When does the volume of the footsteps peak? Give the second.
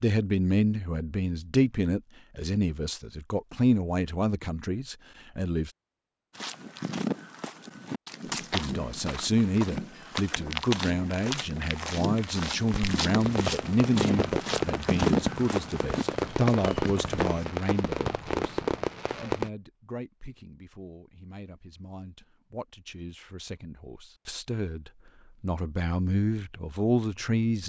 15 s.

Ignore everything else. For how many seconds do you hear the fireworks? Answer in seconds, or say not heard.
7 s.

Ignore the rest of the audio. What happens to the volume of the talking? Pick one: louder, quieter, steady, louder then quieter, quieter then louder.
quieter then louder.